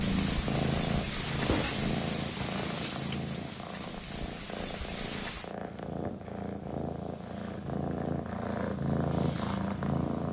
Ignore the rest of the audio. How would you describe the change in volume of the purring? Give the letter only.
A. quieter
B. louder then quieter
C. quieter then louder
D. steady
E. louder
C.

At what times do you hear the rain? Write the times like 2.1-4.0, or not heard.
0.0-5.5.